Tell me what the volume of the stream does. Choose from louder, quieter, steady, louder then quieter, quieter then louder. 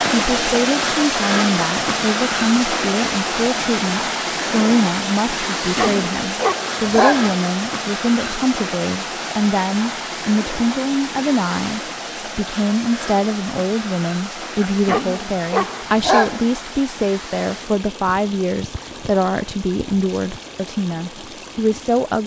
quieter.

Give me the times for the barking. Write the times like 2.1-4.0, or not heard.
5.5-7.3, 14.6-16.4.